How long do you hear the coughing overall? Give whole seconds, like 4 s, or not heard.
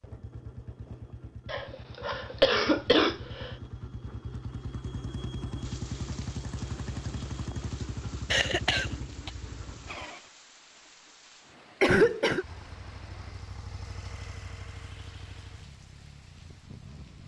4 s.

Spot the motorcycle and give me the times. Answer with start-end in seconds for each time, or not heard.
0.0-10.3, 11.5-17.2.